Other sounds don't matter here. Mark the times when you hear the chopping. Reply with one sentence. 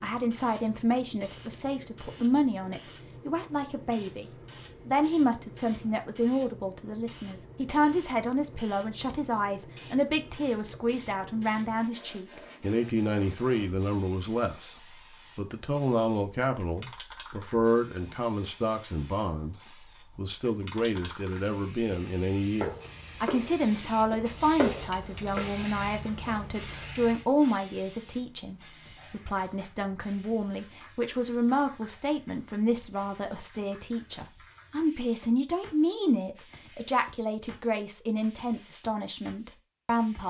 You can hear the chopping from 22.6 to 25.4 s.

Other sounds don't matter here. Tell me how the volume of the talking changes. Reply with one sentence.
The loudness of the talking stays about the same.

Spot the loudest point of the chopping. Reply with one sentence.
The volume of the chopping peaks at 25 seconds.